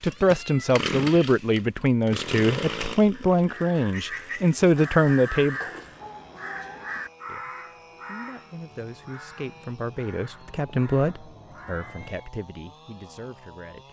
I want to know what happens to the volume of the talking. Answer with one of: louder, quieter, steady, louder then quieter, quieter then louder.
quieter.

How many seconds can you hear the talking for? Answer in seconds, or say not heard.
12 s.